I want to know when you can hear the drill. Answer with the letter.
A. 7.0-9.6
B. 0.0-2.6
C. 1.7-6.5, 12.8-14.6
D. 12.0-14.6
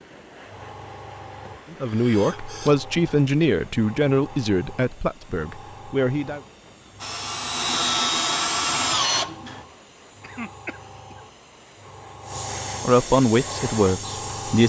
A.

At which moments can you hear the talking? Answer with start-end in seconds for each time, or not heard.
1.7-6.5, 12.8-14.6.